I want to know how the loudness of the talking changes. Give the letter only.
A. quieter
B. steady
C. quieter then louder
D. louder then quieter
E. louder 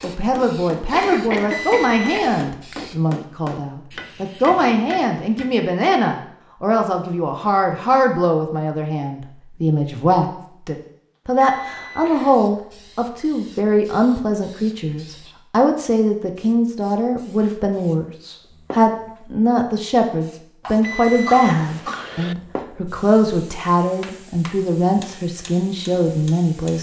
B.